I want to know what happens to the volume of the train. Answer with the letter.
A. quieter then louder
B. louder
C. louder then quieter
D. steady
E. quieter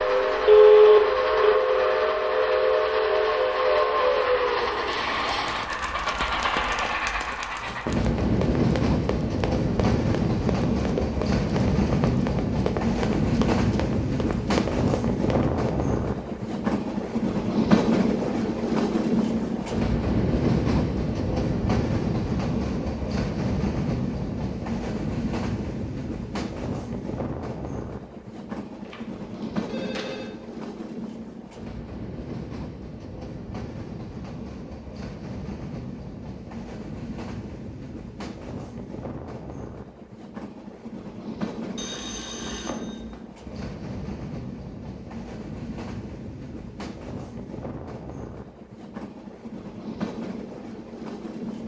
E.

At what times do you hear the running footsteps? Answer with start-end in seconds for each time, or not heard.
7.5-15.7.